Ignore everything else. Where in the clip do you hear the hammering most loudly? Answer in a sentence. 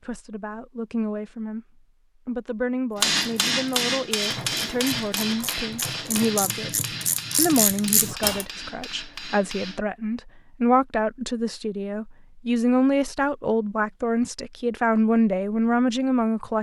The loudest moment of the hammering is at 3 seconds.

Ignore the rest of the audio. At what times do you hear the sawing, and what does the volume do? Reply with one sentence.
The sawing can't be heard in this clip.